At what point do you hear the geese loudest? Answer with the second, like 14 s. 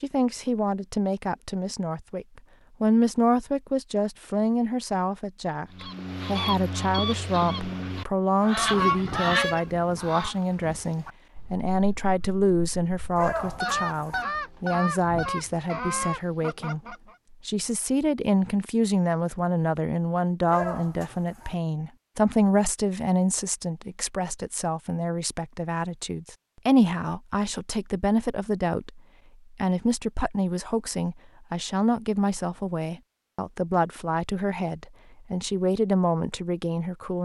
9 s.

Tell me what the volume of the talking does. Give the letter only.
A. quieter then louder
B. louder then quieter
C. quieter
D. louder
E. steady
E.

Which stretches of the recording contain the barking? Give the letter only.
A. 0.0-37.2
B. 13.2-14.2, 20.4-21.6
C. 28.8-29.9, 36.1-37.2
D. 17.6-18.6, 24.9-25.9
B.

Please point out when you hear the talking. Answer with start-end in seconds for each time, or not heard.
0.0-37.2.